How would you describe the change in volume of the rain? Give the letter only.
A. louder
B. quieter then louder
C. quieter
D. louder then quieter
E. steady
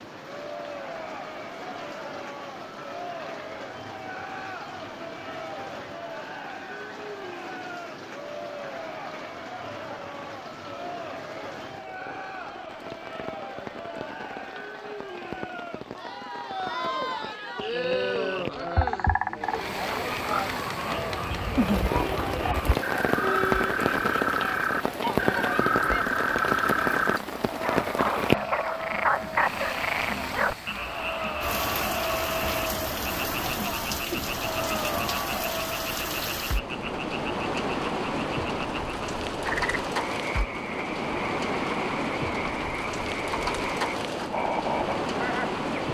A.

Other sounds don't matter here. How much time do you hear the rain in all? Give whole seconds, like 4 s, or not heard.
46 s.